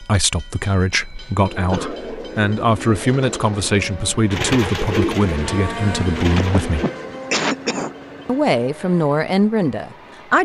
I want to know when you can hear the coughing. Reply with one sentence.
The coughing can be heard from 1.2 to 1.9 s and from 6.3 to 7.9 s.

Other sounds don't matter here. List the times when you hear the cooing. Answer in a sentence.
You can hear the cooing from 1.4 to 7.0 s.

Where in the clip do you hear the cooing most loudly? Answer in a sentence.
The loudest moment of the cooing is at 5 seconds.